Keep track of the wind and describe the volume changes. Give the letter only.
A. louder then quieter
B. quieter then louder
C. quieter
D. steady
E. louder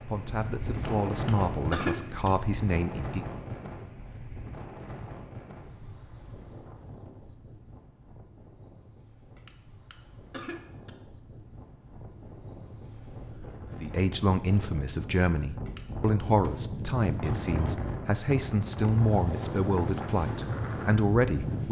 B.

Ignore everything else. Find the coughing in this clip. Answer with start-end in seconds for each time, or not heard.
0.8-2.3, 9.3-10.9, 15.7-16.2.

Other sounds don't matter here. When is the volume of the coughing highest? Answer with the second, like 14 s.
2 s.